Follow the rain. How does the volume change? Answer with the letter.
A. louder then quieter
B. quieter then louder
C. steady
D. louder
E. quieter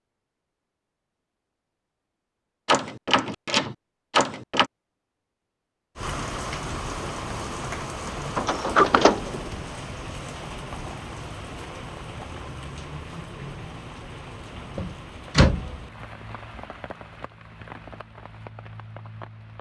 E.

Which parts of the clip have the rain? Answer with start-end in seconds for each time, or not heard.
6.0-19.5.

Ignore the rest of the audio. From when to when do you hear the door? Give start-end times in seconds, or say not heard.
2.6-4.7, 8.3-9.4, 14.8-15.8.